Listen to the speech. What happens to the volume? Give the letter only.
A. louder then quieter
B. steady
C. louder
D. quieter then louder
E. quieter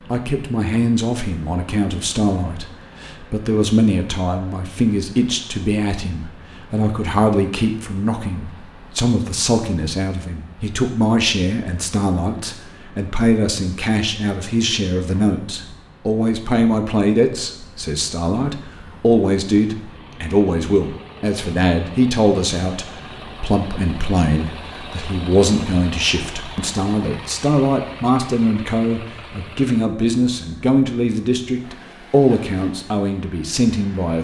B.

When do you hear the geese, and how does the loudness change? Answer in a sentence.
The geese can't be heard in this clip.